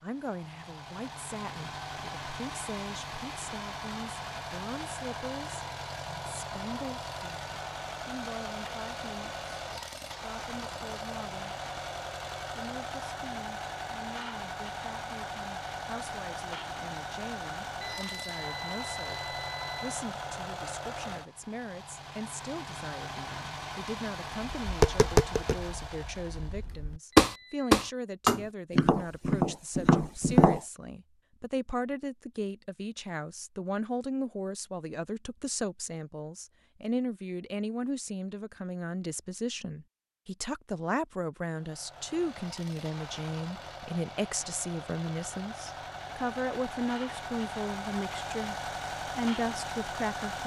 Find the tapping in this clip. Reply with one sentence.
The tapping can be heard from 24.6 to 30.6 s.